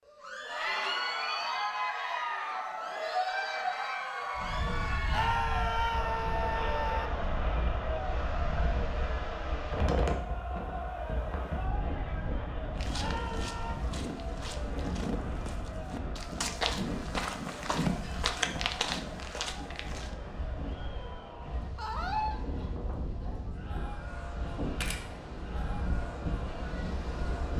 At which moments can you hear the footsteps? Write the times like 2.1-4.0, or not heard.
12.8-20.1.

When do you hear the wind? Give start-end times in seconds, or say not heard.
4.3-27.5.